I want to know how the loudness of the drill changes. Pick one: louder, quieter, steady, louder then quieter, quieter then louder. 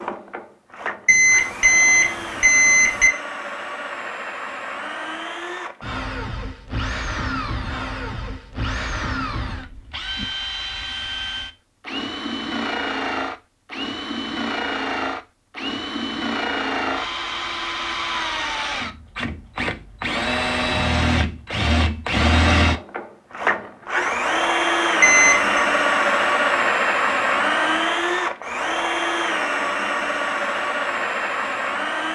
louder.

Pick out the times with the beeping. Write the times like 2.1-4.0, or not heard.
1.1-3.1, 25.0-25.6.